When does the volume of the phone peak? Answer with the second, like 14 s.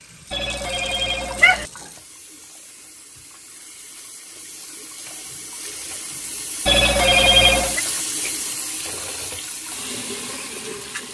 7 s.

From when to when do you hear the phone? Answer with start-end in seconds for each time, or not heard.
0.3-1.6, 6.7-7.8.